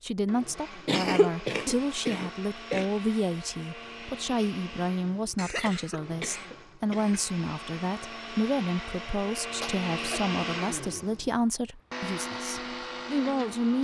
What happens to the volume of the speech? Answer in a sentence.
The volume of the speech stays about the same.